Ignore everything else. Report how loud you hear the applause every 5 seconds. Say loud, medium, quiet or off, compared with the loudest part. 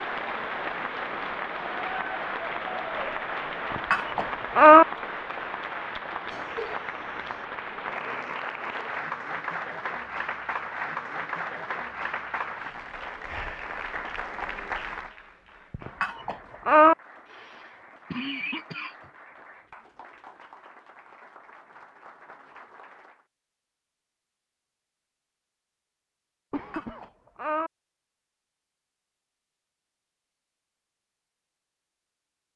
loud, loud, loud, quiet, quiet, off, off.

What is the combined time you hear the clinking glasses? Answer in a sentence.
The clinking glasses can be heard for 3 seconds in total.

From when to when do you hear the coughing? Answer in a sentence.
You can hear the coughing from 6.3 to 7.5 s, from 17.2 to 19.1 s and from 26.5 to 27.1 s.